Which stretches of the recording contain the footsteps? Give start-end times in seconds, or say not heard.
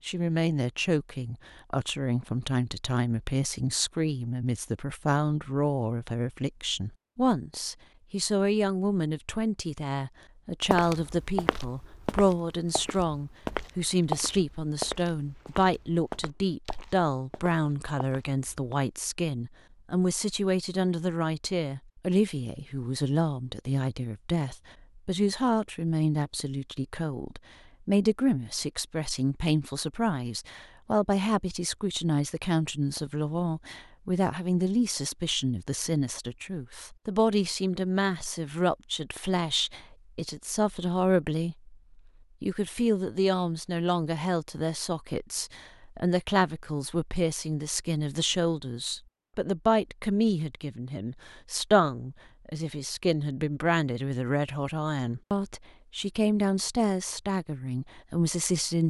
10.7-18.8.